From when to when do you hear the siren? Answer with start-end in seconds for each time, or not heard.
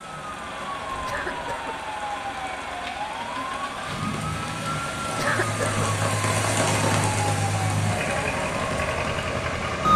0.0-9.9.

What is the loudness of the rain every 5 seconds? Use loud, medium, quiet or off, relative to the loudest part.
quiet, loud.